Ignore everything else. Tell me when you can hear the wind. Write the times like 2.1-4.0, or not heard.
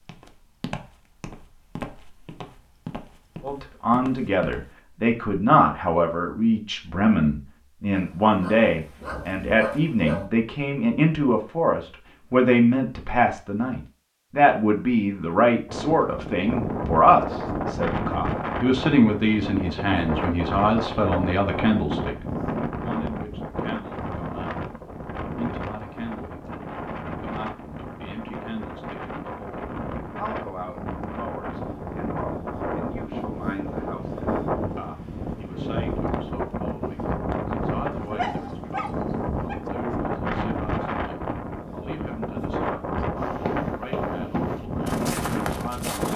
15.7-46.1.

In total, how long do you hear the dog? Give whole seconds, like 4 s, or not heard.
4 s.